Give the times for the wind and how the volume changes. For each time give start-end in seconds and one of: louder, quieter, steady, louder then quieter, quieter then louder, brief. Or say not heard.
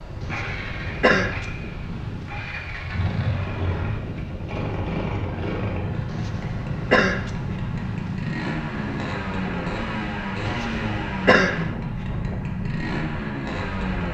0.0-14.0 steady.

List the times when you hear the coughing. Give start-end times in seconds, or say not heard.
0.2-1.4, 6.1-7.3, 10.4-11.7.